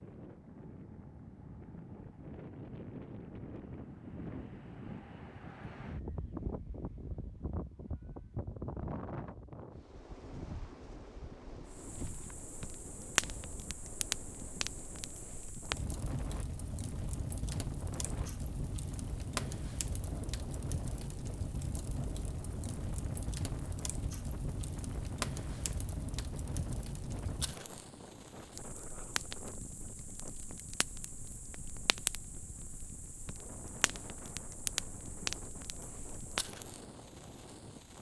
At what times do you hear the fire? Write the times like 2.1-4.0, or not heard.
11.7-37.9.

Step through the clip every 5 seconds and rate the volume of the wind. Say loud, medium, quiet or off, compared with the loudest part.
loud, loud, medium, medium, medium, medium, medium, medium.